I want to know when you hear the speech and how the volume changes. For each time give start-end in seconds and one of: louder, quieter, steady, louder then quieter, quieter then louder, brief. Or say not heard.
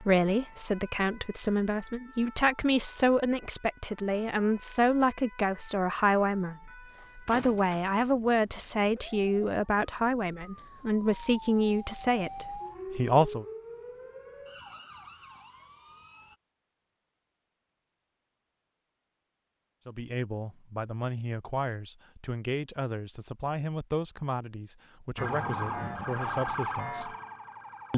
0.0-13.4 steady
19.9-27.1 steady.